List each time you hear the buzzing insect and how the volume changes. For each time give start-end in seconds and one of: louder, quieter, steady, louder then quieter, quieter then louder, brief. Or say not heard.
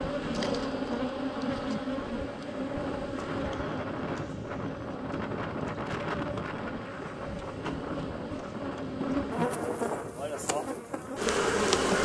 0.0-11.9 quieter then louder.